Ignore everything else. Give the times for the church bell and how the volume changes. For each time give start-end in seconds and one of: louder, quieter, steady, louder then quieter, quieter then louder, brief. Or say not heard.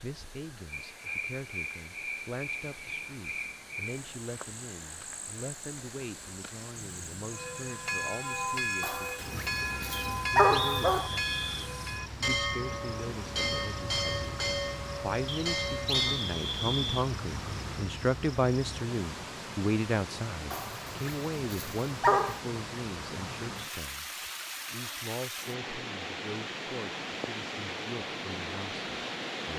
7.3-16.3 steady.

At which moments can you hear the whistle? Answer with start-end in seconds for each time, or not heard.
9.9-11.7, 15.2-17.1.